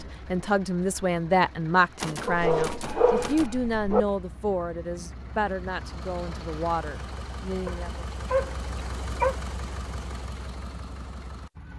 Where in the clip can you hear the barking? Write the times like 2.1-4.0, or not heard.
2.2-4.0, 7.7-9.3.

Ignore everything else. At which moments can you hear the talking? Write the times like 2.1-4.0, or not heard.
0.0-8.1.